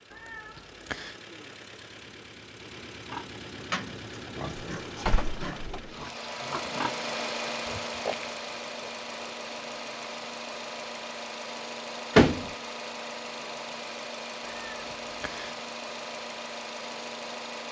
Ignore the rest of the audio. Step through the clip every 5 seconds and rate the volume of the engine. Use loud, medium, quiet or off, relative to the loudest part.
medium, loud, loud, loud.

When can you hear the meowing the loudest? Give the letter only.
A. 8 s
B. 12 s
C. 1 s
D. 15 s
C.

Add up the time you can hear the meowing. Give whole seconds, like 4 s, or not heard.
2 s.